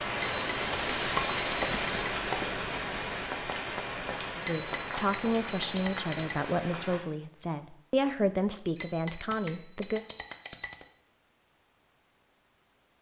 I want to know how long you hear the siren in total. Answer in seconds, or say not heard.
not heard.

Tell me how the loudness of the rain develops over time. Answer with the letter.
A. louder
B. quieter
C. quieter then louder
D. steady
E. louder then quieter
B.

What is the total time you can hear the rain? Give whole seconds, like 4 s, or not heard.
7 s.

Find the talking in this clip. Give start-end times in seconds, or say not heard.
4.3-10.0.